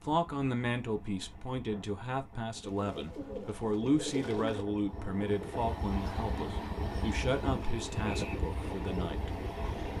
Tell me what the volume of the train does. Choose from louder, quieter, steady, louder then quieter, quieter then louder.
louder.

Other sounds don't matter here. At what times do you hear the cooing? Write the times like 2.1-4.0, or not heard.
2.6-4.7.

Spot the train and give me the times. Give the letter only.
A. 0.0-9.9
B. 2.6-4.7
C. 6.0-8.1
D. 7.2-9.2
A.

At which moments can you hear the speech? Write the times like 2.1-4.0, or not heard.
0.0-9.3.